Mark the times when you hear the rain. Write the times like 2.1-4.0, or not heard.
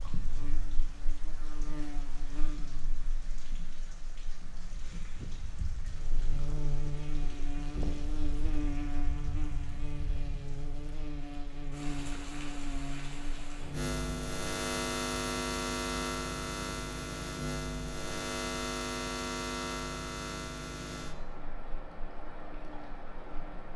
0.0-23.7.